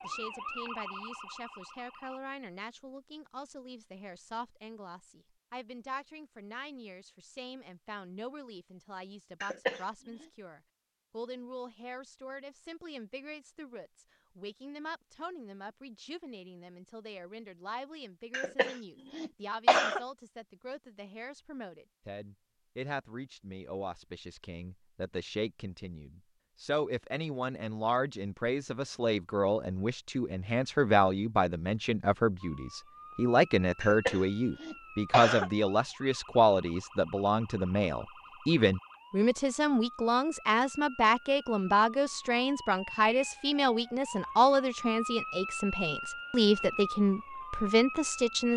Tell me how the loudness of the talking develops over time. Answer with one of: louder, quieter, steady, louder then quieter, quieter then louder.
louder.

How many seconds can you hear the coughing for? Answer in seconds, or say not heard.
4 s.